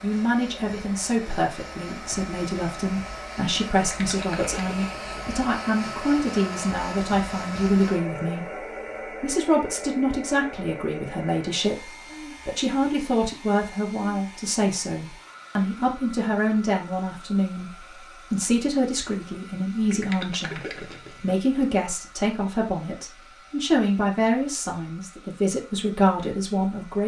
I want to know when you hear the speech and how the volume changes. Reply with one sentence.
You can hear the speech from 0.0 to 27.0 s, at a steady volume.